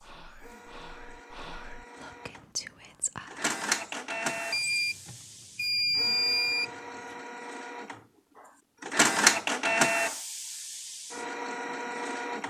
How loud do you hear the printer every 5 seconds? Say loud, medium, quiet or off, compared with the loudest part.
medium, loud, medium.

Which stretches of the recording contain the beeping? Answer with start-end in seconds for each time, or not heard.
4.5-6.7.